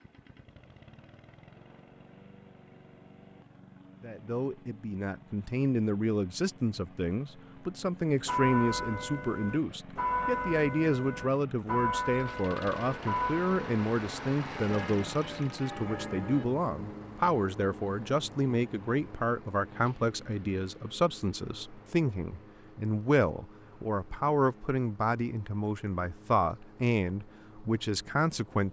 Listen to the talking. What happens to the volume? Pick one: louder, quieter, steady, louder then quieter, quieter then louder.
steady.